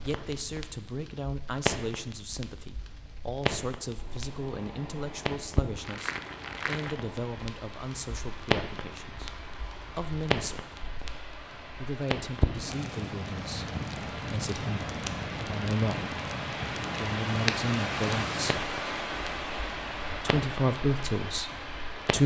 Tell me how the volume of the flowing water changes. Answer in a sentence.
The volume of the flowing water goes up.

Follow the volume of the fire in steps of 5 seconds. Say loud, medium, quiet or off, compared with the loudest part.
loud, loud, loud, loud, medium.